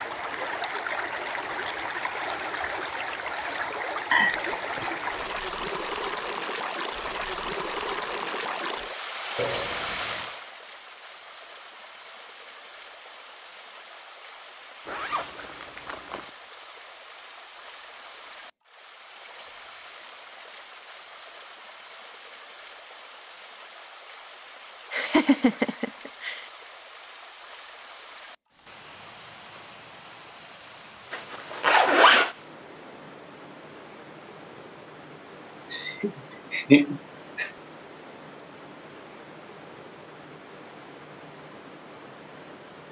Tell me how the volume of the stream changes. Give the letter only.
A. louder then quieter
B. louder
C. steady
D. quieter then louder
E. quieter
E.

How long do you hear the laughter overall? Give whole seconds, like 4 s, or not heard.
4 s.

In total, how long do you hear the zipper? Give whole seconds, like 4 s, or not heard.
4 s.